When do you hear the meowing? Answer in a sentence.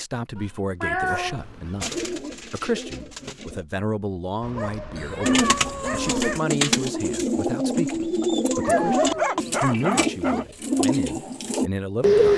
You can hear the meowing from 0.3 to 1.8 s, from 5.0 to 6.2 s and from 8.4 to 9.1 s.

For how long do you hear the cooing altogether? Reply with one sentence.
You can hear the cooing for 9 seconds altogether.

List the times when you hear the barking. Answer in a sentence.
The barking can be heard from 1.0 to 2.1 s, from 4.4 to 6.4 s and from 8.6 to 10.4 s.